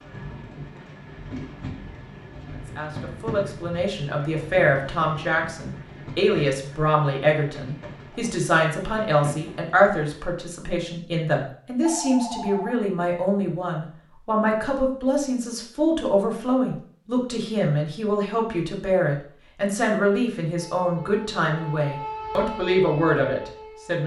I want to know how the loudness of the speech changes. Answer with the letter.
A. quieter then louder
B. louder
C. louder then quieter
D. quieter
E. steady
E.